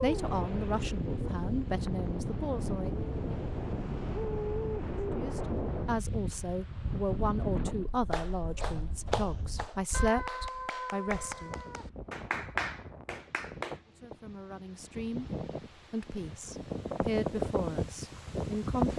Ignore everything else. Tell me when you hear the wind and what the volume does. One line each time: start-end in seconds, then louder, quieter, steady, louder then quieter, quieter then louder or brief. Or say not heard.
0.0-18.9 quieter then louder.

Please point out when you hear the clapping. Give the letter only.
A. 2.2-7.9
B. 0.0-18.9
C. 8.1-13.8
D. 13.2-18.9
C.